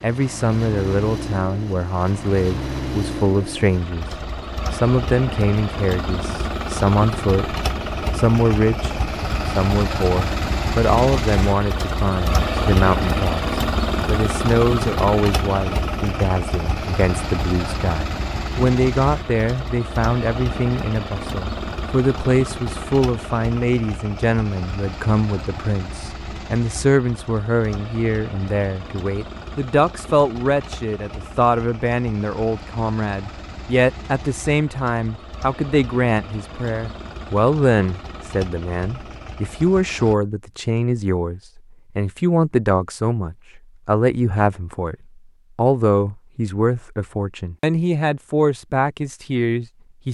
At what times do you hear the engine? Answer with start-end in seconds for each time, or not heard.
0.0-40.1.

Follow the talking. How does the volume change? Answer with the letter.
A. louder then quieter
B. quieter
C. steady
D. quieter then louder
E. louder
C.